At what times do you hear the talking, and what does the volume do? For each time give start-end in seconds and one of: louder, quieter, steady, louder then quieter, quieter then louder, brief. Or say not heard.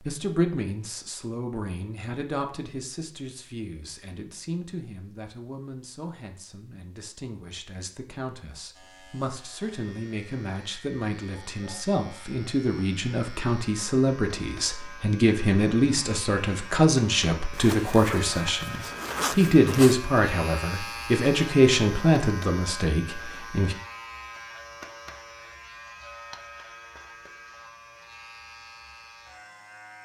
0.0-23.8 quieter then louder.